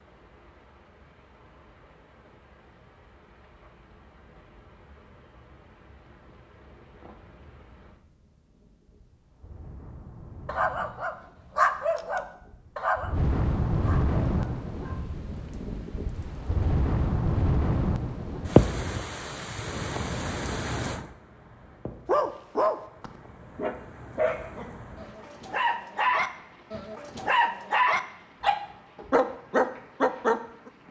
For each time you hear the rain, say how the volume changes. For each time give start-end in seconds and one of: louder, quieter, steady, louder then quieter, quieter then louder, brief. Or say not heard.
0.0-30.8 louder then quieter.